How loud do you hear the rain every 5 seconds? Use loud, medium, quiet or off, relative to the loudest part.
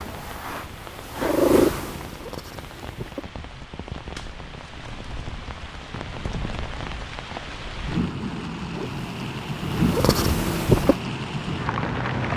quiet, loud, loud.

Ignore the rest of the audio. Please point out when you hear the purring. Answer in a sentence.
You can hear the purring from 0.0 to 3.2 s and from 8.8 to 10.9 s.